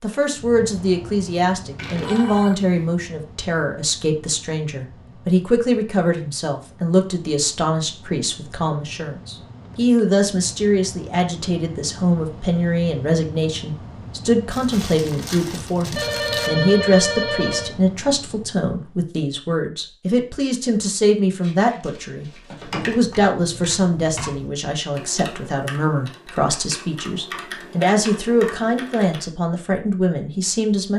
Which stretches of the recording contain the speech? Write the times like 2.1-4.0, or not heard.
0.0-30.9.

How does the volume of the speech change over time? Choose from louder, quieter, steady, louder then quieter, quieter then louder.
steady.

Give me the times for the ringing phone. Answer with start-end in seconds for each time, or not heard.
2.0-2.8, 15.9-17.7.